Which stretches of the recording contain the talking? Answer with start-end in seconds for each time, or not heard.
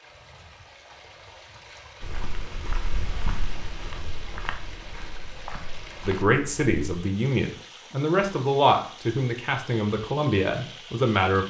6.0-11.4.